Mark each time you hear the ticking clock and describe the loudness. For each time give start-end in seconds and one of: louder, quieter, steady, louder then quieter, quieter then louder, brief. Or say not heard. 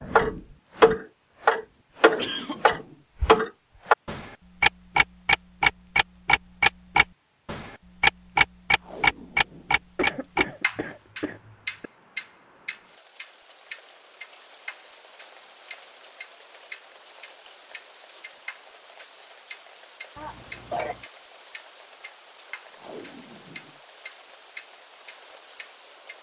0.0-26.1 quieter.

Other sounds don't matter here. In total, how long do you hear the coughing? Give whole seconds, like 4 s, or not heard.
4 s.